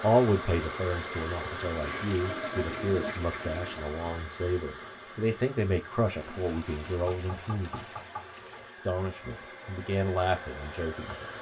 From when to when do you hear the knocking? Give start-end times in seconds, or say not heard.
7.0-8.7.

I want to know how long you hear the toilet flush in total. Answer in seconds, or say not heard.
5 s.